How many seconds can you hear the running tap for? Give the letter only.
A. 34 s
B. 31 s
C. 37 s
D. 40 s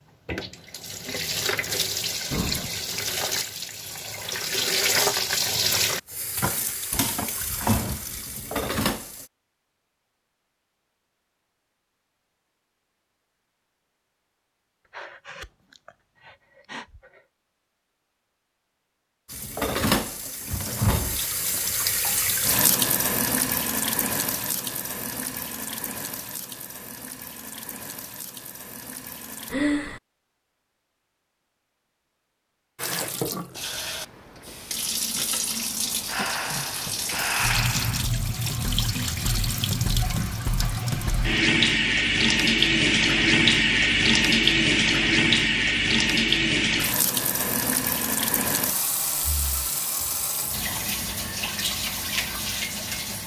D.